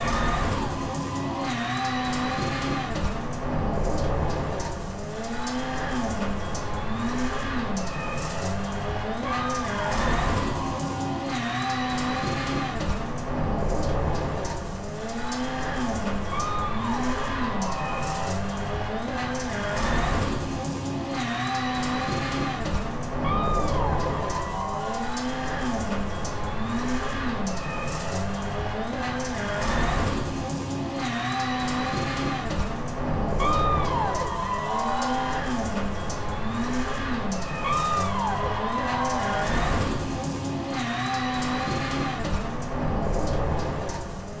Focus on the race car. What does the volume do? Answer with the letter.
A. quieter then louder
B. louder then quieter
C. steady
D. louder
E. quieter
C.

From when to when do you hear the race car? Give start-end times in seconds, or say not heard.
0.0-44.3.